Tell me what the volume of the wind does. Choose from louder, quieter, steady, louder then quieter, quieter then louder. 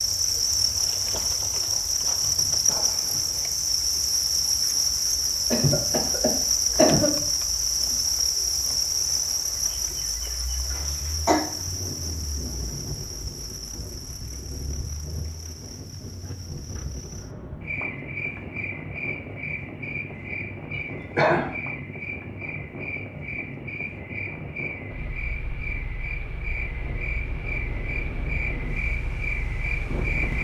steady.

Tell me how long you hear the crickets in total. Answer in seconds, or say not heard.
30 s.